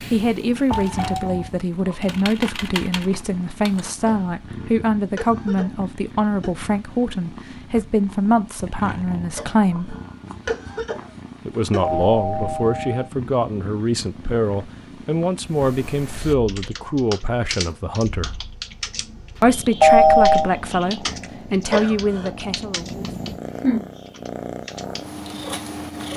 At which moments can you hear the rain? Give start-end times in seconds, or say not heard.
not heard.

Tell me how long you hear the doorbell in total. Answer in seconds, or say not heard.
3 s.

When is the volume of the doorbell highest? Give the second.
20 s.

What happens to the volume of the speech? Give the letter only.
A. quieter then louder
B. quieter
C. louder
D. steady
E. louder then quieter
D.